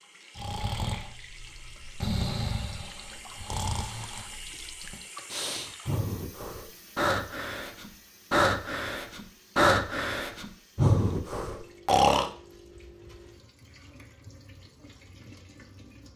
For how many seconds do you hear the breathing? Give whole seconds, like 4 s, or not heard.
12 s.